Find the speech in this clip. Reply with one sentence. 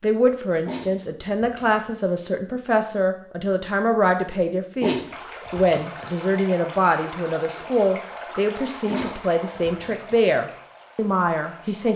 The speech can be heard from 0.0 to 11.9 s.